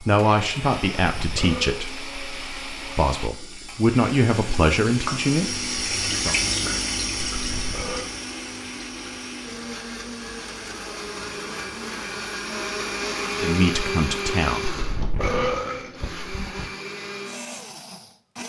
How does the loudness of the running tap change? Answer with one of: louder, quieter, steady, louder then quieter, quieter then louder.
louder then quieter.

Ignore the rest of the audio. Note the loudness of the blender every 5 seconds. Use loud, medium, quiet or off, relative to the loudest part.
medium, medium, loud, medium.